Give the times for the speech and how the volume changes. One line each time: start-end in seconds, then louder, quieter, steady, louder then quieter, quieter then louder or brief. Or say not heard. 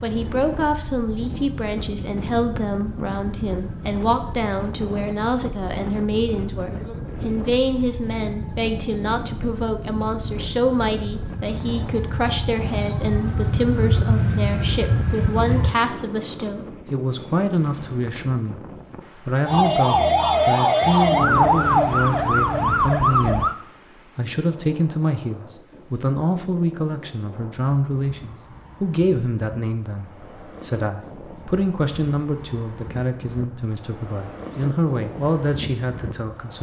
0.0-36.5 steady.